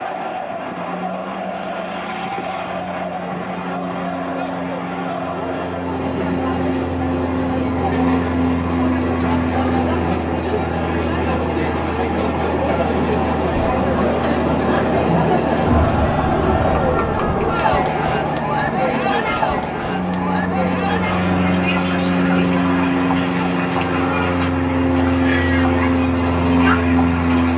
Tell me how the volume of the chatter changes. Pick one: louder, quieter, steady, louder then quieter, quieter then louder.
louder then quieter.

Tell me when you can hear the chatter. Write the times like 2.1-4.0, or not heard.
0.0-27.5.